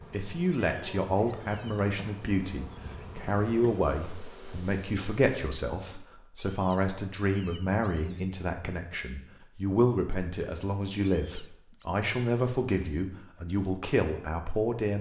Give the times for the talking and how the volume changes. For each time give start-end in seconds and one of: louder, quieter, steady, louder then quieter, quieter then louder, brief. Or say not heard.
0.1-14.9 steady.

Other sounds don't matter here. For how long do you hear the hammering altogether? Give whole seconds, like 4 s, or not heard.
not heard.